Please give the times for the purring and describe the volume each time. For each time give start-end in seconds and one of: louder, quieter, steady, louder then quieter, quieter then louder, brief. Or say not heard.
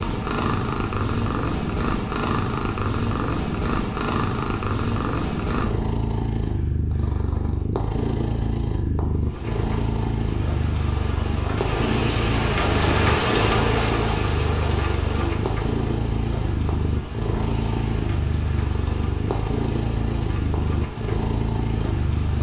0.0-22.3 steady.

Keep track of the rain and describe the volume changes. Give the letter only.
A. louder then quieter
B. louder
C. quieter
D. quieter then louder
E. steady
A.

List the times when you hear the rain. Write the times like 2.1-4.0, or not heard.
9.2-22.3.